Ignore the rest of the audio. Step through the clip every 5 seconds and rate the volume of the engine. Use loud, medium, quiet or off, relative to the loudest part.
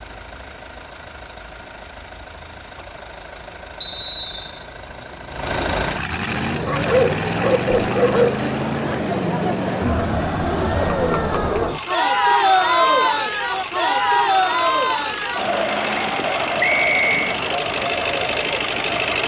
quiet, loud, medium, loud.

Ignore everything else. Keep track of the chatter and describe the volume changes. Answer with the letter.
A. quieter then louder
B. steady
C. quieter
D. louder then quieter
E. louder
D.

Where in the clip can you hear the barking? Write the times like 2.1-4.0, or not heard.
6.7-8.4.